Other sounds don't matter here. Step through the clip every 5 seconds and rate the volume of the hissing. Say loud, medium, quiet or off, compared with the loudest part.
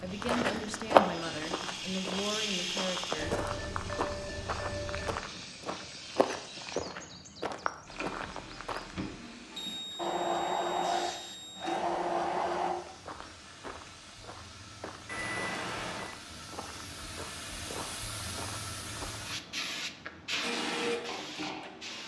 medium, medium, medium, loud, loud.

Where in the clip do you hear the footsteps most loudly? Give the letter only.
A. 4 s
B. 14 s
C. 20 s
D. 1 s
D.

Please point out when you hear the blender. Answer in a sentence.
You can hear the blender from 0.0 to 3.2 s, from 9.9 to 12.8 s and from 20.4 to 21.8 s.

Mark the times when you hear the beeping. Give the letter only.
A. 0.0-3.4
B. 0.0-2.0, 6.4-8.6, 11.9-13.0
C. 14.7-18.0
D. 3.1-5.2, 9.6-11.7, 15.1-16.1
D.